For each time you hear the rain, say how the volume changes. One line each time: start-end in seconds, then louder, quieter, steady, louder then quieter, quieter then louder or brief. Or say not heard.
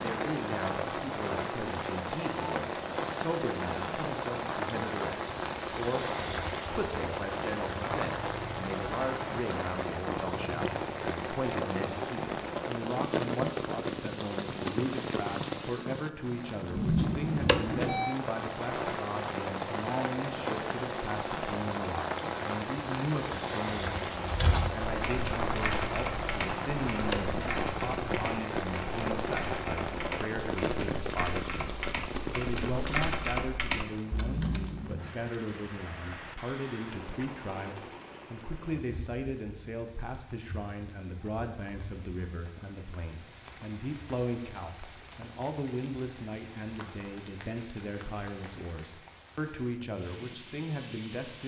0.0-51.4 quieter.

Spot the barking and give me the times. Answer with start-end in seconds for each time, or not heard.
not heard.